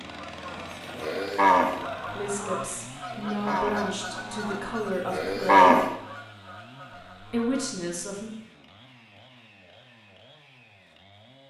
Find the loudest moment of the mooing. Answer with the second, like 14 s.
6 s.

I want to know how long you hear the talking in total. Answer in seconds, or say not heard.
5 s.